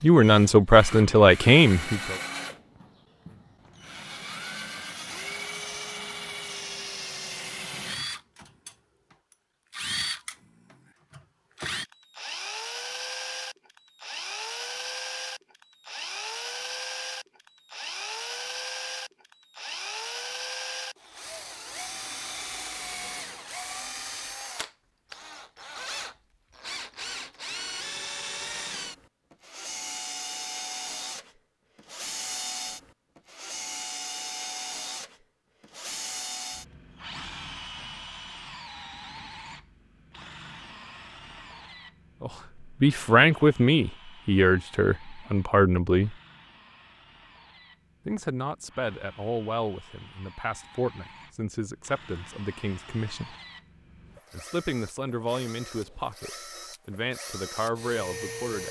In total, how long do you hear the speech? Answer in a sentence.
The speech can be heard for 16 seconds in total.